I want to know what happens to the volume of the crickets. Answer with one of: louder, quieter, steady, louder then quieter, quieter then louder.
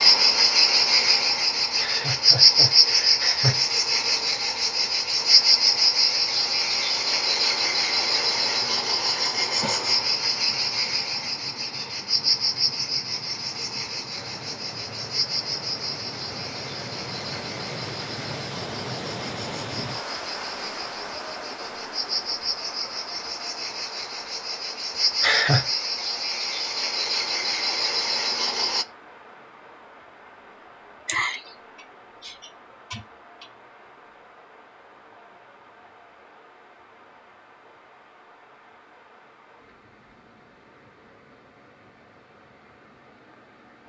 quieter then louder.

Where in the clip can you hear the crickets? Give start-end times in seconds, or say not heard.
0.0-28.9.